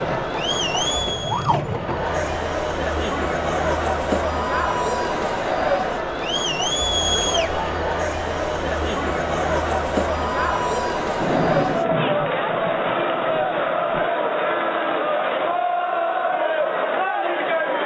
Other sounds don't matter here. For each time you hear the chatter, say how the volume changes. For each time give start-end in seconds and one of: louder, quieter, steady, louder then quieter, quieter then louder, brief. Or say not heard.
0.0-17.8 steady.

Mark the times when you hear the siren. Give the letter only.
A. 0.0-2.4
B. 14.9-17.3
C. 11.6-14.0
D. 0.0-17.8
A.